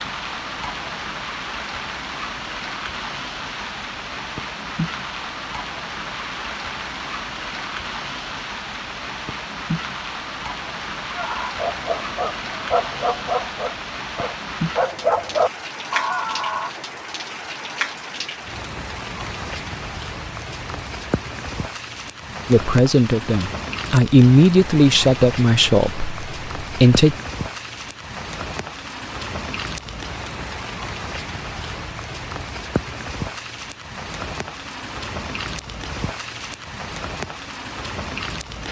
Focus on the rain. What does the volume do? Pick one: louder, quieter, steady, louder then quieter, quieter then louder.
steady.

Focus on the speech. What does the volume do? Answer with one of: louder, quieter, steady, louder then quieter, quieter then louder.
louder then quieter.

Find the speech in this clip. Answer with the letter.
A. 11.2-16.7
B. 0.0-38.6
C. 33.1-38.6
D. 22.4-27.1
D.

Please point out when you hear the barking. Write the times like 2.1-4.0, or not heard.
11.2-16.7.